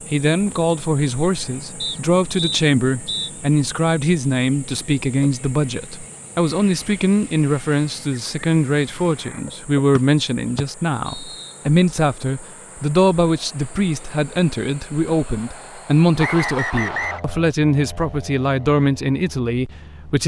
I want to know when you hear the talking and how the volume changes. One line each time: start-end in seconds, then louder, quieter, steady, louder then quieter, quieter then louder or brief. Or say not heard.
0.1-20.2 steady.